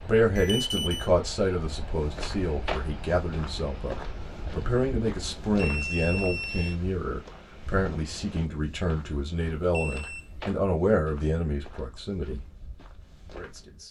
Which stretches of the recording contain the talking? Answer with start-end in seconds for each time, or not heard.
0.0-12.4, 13.3-13.8.